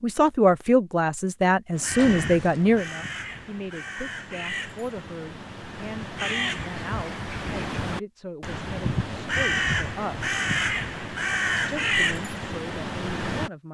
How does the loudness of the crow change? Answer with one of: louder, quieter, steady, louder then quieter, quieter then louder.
louder.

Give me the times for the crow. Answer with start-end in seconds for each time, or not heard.
1.8-13.5.